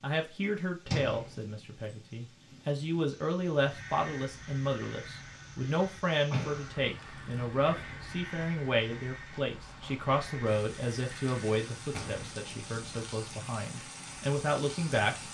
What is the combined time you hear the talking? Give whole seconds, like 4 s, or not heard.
15 s.